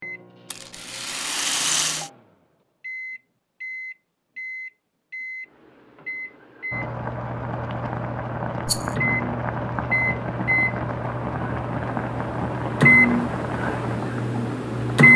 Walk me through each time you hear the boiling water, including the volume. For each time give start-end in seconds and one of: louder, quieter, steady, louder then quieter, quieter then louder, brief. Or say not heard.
6.7-15.1 steady.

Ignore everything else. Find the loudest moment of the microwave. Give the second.
15 s.